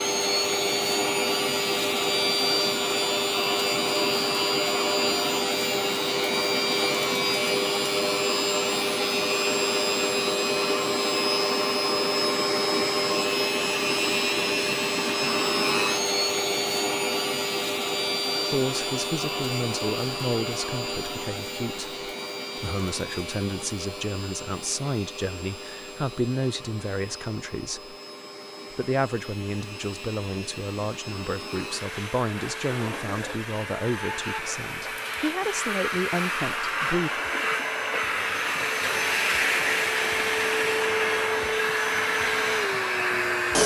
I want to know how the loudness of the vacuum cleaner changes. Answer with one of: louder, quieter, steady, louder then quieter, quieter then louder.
quieter then louder.